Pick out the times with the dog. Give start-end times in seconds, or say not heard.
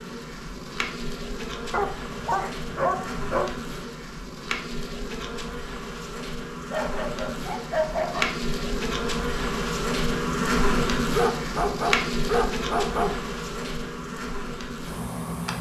1.7-3.5, 6.7-8.3, 11.1-13.1.